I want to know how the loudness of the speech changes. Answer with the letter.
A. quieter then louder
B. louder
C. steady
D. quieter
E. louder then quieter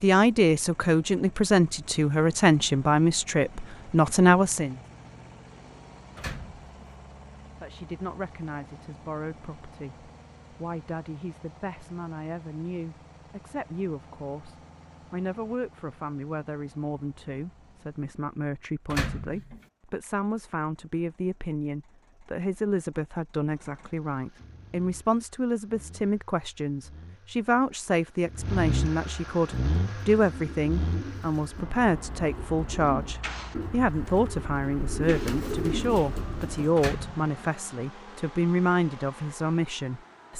A.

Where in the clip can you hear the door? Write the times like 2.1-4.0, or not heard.
6.2-6.8, 18.9-19.6, 36.8-37.5.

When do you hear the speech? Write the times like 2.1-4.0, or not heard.
0.0-4.8, 7.6-40.3.